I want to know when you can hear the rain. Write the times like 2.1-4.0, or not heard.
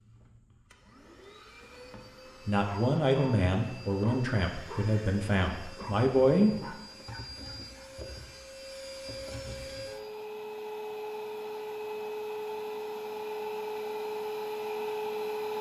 not heard.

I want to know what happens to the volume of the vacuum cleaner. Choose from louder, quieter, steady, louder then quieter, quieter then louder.
louder.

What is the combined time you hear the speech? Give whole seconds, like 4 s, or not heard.
4 s.